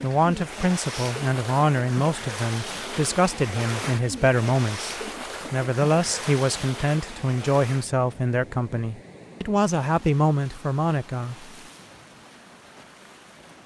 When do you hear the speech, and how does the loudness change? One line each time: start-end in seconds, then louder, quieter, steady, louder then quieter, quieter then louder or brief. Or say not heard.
0.0-11.5 steady.